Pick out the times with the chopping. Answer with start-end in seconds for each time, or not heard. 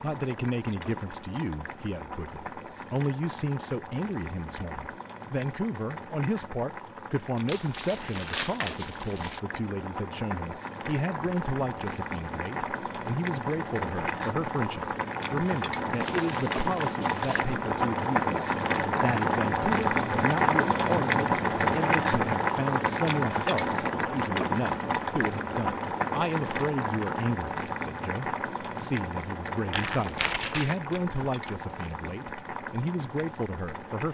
not heard.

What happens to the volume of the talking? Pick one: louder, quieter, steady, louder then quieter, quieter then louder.
steady.